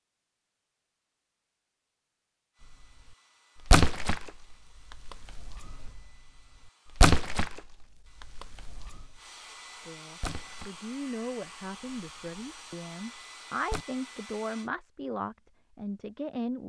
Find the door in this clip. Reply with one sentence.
The door can't be heard in this clip.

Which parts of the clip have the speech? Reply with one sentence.
You can hear the speech from 9.8 to 16.6 s.